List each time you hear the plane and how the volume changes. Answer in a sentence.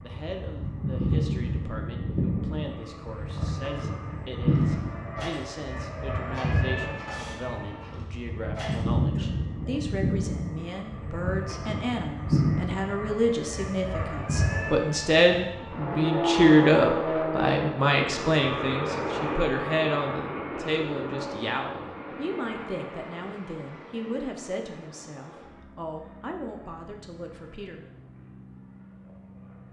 You can hear the plane from 0.0 to 29.6 s, getting quieter.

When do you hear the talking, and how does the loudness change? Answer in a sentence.
The talking can be heard from 0.0 to 27.9 s, getting louder then quieter.